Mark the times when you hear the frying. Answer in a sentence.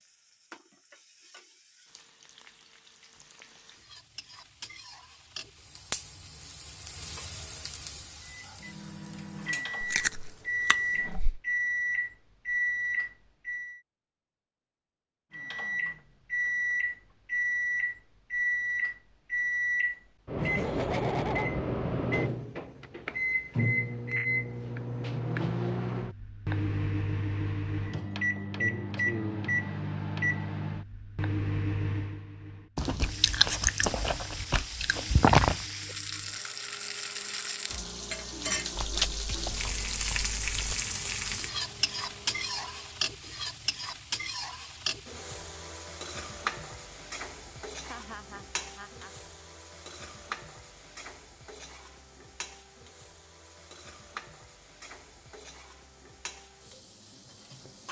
You can hear the frying from 0.0 to 11.0 s and from 33.0 to 57.8 s.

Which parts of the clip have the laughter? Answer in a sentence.
You can hear the laughter from 20.4 to 21.5 s and from 47.9 to 49.1 s.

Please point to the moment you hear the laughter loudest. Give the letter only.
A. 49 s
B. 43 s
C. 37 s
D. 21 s
D.